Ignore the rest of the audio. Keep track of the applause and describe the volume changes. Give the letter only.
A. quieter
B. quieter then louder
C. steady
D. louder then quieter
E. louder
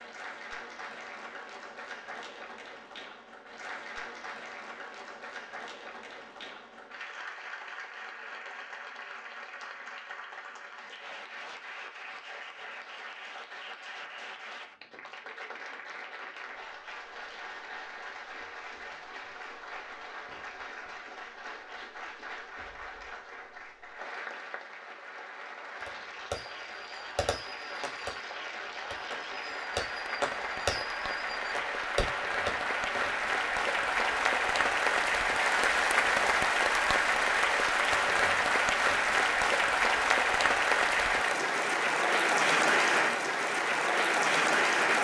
E.